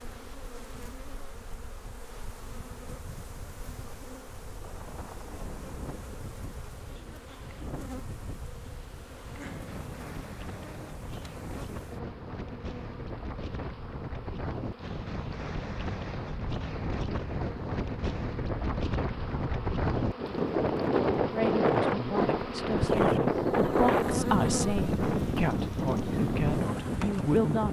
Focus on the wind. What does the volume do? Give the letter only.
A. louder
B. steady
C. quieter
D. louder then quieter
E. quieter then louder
A.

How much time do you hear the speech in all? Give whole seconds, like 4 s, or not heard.
6 s.